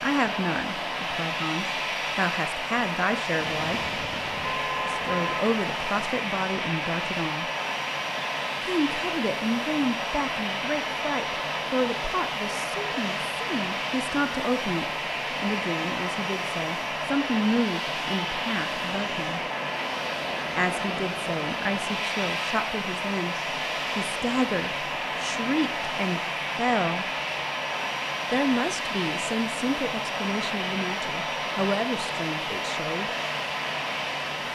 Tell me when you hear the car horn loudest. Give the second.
5 s.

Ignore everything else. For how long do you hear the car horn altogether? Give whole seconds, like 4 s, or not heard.
2 s.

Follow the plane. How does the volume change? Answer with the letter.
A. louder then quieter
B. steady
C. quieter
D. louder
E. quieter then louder
B.